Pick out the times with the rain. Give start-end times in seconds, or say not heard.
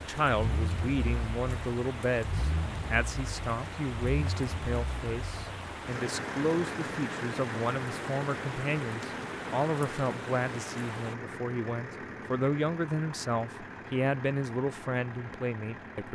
0.0-11.2.